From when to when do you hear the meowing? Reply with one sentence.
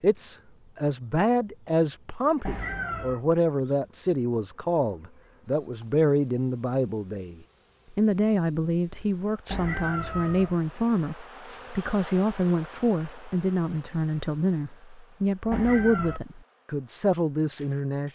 You can hear the meowing from 2.4 to 3.2 s, from 9.5 to 10.6 s and from 15.5 to 16.2 s.